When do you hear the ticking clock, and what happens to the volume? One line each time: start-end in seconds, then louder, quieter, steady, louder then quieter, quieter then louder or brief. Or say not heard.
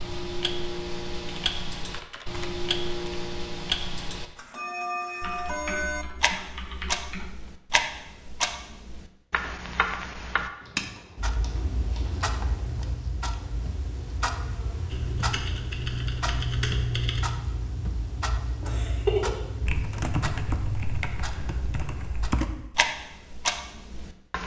0.0-24.4 steady.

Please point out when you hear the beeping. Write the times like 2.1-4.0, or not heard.
not heard.